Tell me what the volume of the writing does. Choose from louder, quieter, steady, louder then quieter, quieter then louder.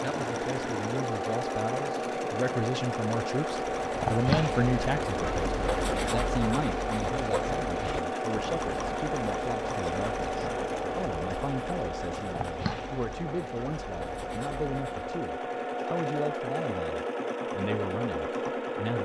quieter.